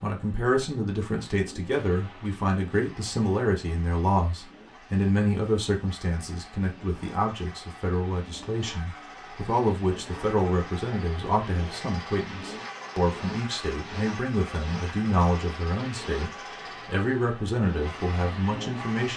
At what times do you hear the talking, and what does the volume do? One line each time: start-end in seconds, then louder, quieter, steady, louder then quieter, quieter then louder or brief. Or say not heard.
0.0-19.1 steady.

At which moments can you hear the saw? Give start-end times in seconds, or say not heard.
not heard.